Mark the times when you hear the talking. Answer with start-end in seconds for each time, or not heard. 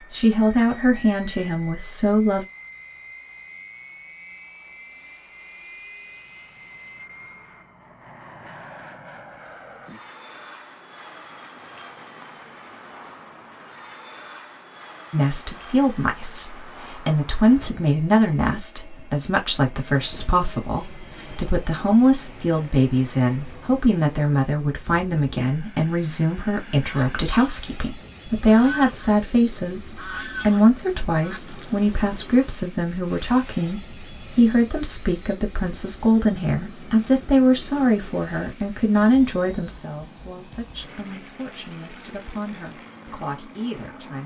0.1-2.5, 15.1-44.2.